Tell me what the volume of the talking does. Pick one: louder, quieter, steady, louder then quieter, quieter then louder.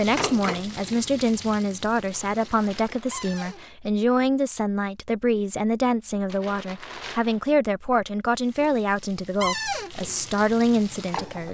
steady.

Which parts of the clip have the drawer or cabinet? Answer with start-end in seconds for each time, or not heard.
3.1-3.6, 9.4-9.9.